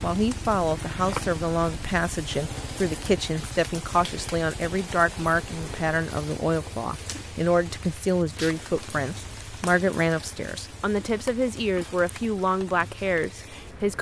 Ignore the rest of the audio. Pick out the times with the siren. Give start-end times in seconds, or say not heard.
not heard.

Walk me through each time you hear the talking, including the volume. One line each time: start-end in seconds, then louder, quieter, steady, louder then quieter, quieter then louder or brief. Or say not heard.
0.0-13.9 steady.